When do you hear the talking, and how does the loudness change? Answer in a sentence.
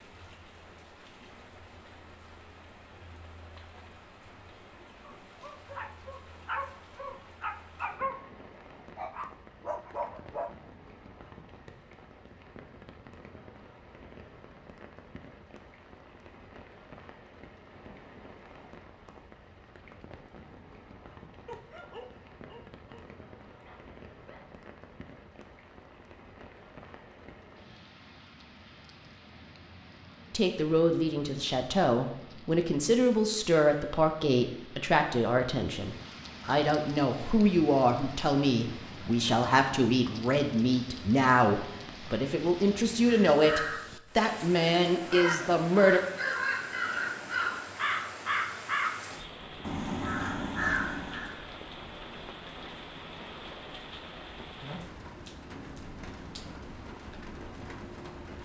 You can hear the talking from 30.3 to 46.0 s, at a steady volume.